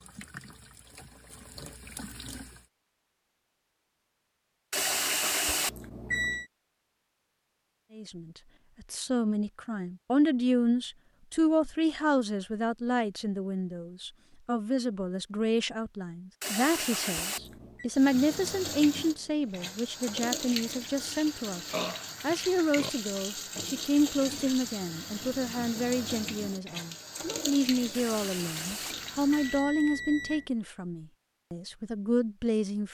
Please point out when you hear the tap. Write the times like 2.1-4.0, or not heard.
0.0-2.6, 17.9-29.6.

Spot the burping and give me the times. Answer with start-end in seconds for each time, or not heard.
21.7-22.9.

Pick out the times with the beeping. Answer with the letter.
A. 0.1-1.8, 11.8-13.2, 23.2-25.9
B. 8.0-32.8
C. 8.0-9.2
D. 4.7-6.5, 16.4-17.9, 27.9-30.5
D.